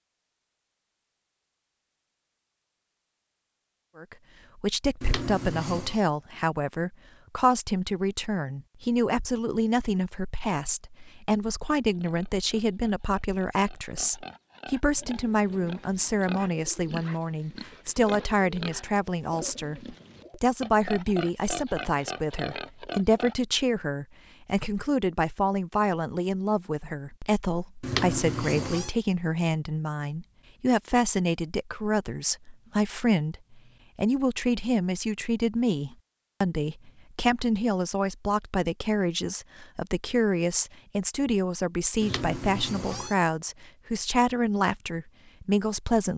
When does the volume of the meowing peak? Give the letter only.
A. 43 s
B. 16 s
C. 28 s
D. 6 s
C.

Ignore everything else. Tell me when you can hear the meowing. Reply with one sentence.
The meowing can be heard from 5.0 to 6.0 s, from 27.8 to 28.9 s and from 42.0 to 43.1 s.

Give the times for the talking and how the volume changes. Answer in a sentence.
You can hear the talking from 4.0 to 46.1 s, at a steady volume.